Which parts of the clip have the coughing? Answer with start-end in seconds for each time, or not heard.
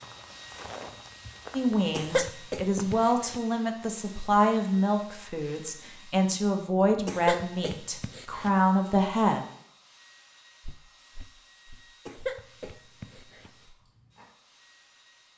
1.9-3.4, 7.0-8.5, 12.1-13.7.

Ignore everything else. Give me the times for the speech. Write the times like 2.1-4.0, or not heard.
1.6-9.4.